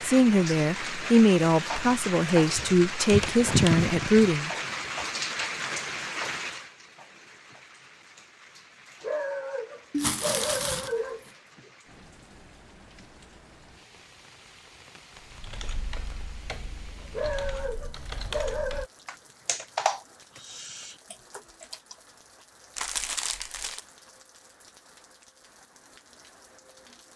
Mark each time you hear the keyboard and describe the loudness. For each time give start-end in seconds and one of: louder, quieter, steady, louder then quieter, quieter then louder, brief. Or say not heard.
15.2-21.9 louder then quieter.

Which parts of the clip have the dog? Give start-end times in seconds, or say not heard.
9.0-11.7, 17.1-18.9.